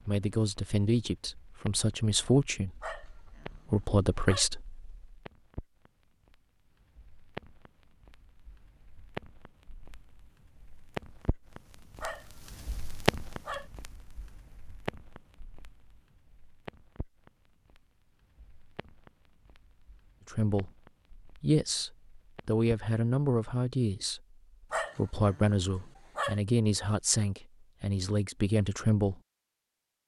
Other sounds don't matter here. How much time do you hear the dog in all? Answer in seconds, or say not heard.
5 s.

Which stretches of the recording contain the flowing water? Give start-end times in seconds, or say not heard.
not heard.